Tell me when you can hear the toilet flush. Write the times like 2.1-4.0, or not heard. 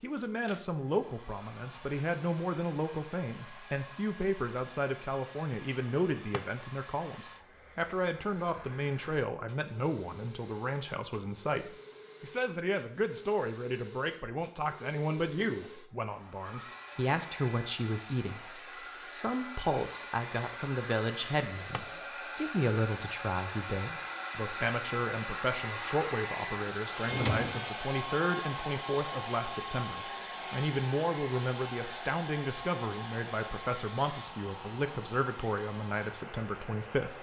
not heard.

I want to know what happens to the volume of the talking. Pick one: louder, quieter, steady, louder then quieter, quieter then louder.
steady.